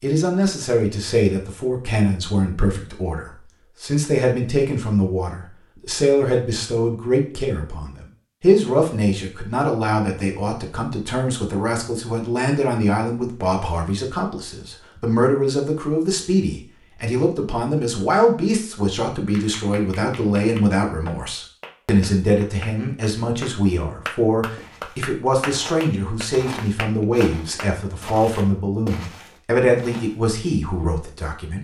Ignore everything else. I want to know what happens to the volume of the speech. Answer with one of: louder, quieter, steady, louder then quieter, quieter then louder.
steady.